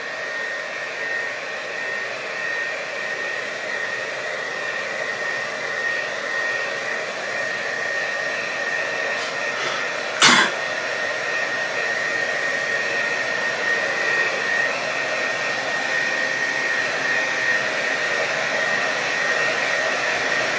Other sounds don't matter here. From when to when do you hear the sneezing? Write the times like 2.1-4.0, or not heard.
9.2-10.6.